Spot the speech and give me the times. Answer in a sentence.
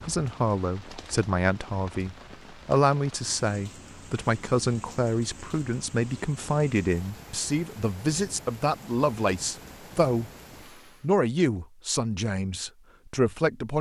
You can hear the speech from 0.0 to 10.3 s and from 11.0 to 13.7 s.